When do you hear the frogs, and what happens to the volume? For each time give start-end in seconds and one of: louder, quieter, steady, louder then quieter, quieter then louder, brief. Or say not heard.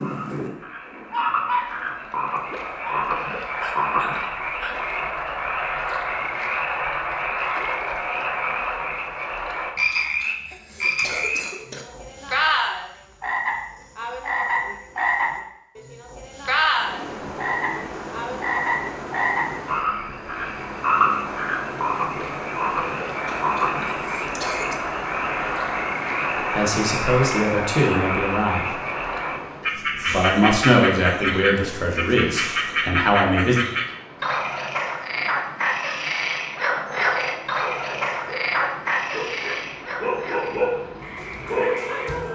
0.0-42.3 steady.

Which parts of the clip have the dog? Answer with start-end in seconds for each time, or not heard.
0.0-4.9, 37.6-42.3.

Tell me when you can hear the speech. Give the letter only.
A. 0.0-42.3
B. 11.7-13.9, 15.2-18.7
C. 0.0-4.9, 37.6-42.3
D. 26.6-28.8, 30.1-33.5
D.